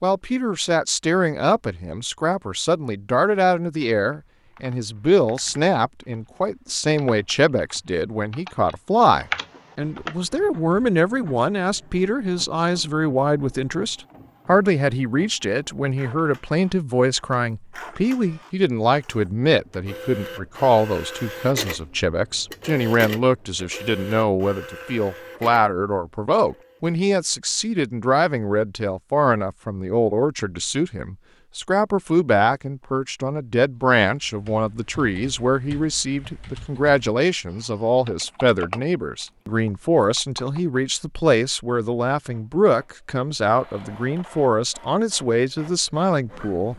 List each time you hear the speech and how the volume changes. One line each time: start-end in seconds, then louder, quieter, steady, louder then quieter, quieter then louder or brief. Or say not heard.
0.0-46.7 steady.